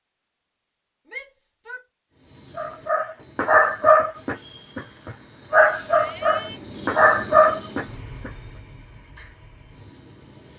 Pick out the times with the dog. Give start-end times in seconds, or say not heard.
2.5-8.3.